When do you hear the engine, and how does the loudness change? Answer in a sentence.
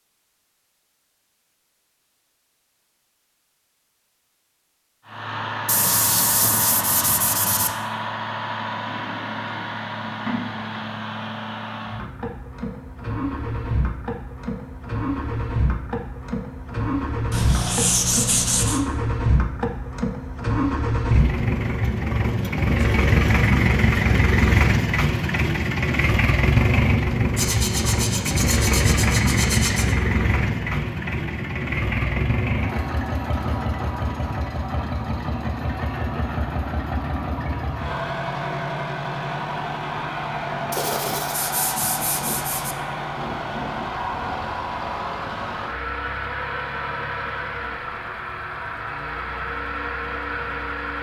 You can hear the engine from 5.0 to 50.9 s, getting louder then quieter.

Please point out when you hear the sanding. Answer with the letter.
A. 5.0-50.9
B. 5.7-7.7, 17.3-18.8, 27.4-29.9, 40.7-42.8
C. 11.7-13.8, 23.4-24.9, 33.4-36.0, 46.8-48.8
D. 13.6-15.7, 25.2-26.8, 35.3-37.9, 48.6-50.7
B.